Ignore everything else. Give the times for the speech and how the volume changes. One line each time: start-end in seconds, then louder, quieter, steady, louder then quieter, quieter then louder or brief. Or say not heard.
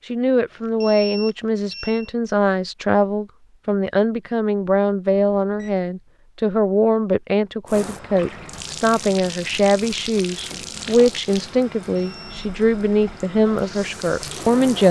0.1-14.8 steady.